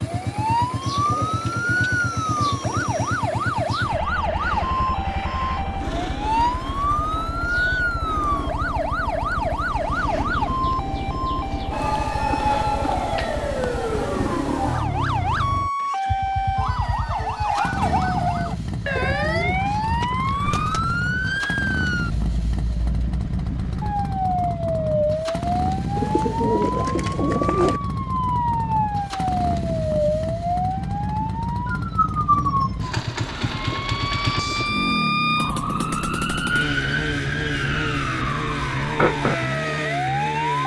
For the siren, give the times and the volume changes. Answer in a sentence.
The siren can be heard from 0.0 to 40.6 s, at a steady volume.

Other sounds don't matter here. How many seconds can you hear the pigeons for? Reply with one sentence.
The pigeons can be heard for 10 seconds in total.